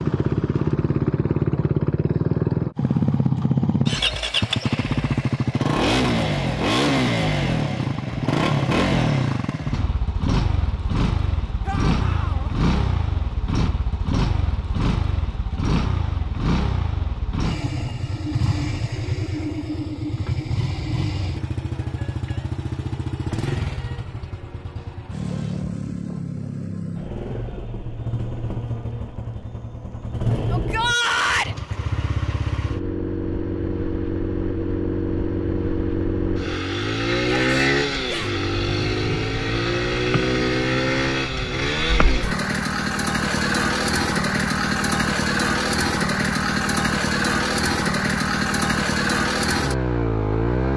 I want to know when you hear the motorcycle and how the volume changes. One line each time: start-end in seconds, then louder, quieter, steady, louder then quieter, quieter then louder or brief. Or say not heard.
0.0-50.7 quieter then louder.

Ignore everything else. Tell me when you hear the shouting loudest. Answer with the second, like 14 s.
31 s.